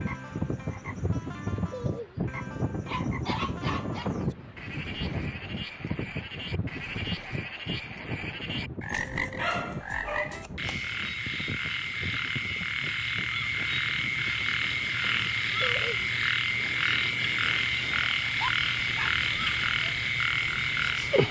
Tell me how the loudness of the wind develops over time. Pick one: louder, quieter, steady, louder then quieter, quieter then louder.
quieter.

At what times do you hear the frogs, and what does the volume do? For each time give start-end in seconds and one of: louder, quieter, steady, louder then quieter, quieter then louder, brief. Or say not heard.
0.0-21.2 louder.